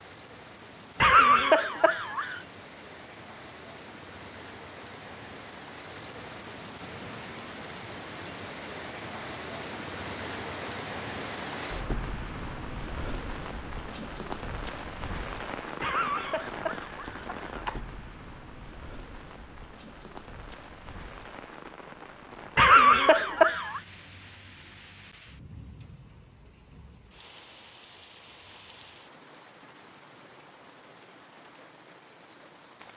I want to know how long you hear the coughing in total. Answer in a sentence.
The coughing can be heard for 5 seconds in total.